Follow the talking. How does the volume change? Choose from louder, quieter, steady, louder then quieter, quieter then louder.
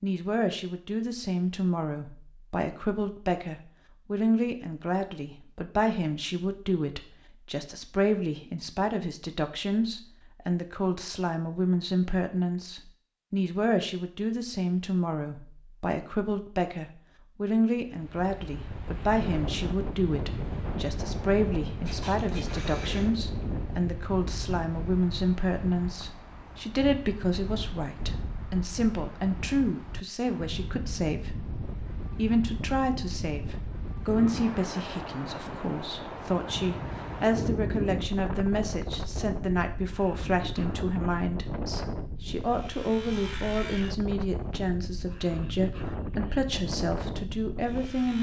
steady.